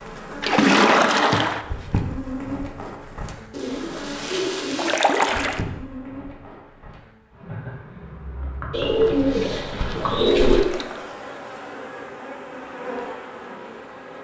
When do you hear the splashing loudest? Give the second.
1 s.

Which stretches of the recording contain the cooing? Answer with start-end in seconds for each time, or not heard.
3.5-5.0, 8.7-10.7.